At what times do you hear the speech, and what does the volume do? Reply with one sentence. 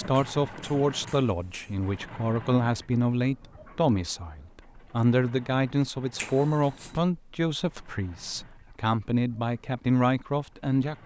The speech can be heard from 0.0 to 11.0 s, at a steady volume.